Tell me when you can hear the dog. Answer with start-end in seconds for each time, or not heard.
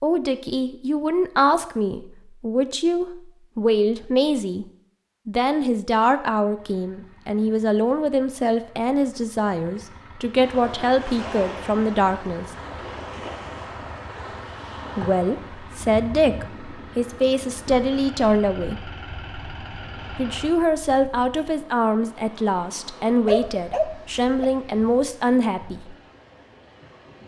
23.2-24.4.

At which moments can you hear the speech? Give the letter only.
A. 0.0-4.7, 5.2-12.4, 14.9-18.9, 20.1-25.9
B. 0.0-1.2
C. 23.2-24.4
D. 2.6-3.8
A.